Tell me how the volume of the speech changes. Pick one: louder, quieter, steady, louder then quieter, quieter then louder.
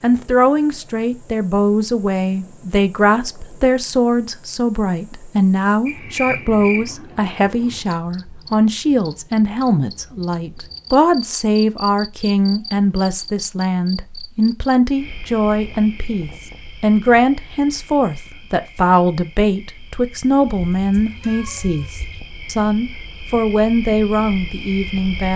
steady.